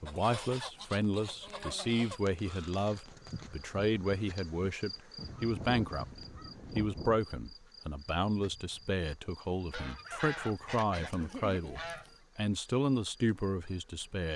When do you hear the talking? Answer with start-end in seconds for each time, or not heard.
0.0-14.3.